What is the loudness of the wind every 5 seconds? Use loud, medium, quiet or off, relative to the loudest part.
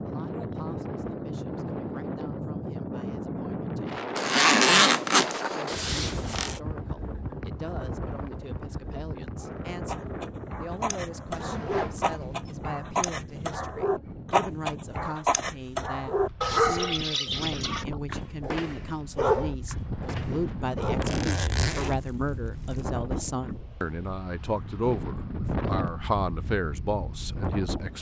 loud, loud, medium, medium, loud, loud.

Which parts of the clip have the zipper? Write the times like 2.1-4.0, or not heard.
4.2-6.6, 11.3-12.6, 20.8-22.8.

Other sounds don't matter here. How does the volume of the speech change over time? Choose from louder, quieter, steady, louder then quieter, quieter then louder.
louder.